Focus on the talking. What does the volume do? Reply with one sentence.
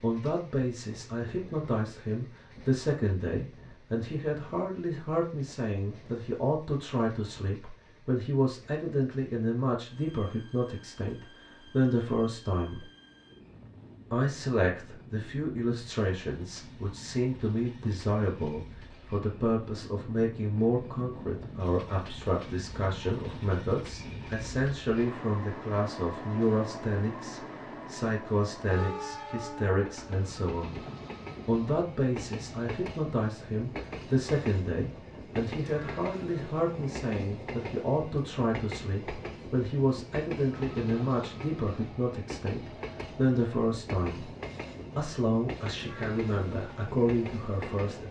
The volume of the talking stays about the same.